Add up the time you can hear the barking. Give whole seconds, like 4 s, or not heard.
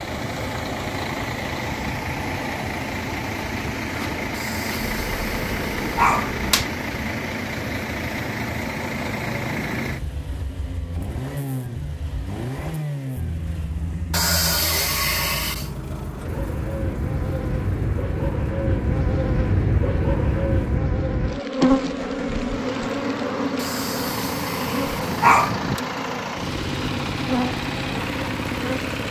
6 s.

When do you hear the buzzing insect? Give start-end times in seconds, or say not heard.
4.8-6.7, 16.1-29.0.